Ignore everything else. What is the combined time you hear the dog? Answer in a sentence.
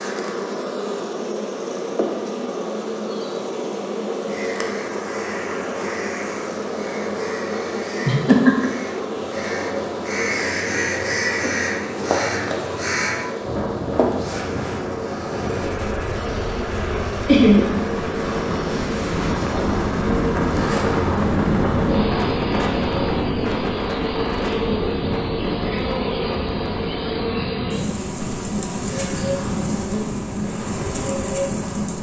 The dog can't be heard in this clip.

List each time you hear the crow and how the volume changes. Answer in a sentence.
You can hear the crow from 4.2 to 13.2 s, getting louder.